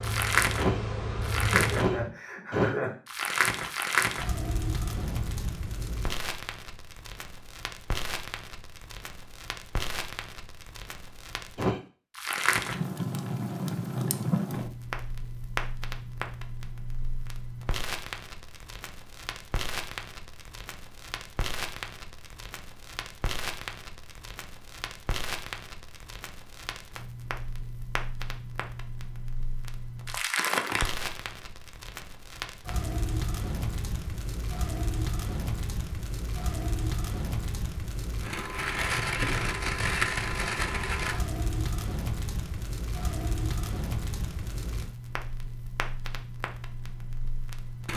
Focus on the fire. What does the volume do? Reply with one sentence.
The loudness of the fire goes down, then up.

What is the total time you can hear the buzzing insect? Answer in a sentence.
The buzzing insect can be heard for 2 seconds in total.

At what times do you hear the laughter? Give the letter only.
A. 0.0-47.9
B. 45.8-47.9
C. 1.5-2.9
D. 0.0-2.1
C.